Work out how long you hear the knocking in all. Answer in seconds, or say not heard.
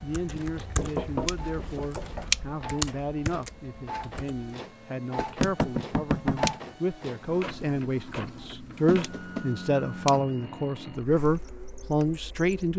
4 s.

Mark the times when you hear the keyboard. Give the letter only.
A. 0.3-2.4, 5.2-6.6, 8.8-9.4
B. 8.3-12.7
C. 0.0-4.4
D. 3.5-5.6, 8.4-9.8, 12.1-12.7
C.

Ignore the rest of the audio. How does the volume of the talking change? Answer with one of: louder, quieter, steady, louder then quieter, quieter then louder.
louder.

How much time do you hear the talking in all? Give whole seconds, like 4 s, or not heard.
13 s.